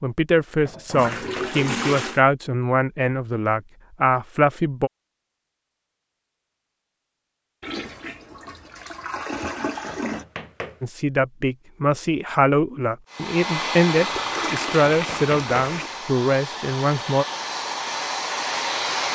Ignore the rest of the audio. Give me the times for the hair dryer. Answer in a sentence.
The hair dryer can be heard from 13.1 to 19.1 s.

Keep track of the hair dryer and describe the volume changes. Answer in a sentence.
The loudness of the hair dryer goes down, then up.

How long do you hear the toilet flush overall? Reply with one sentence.
You can hear the toilet flush for 6 seconds altogether.